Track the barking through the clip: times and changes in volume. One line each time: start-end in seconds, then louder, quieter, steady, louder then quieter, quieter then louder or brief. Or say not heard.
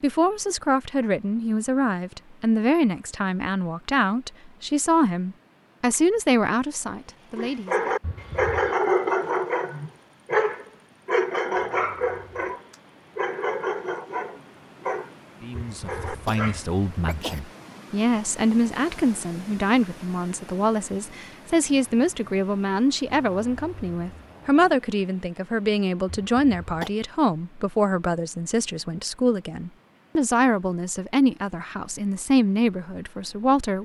7.3-16.6 quieter.